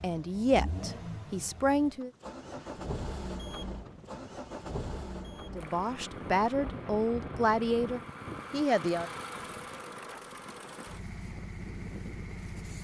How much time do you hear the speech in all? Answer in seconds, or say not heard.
6 s.